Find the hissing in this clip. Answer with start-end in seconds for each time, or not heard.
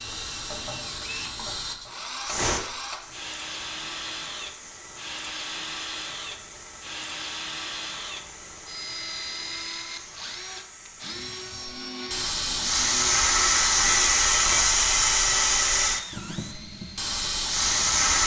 0.0-18.2.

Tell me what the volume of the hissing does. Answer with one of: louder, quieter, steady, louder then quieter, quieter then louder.
quieter then louder.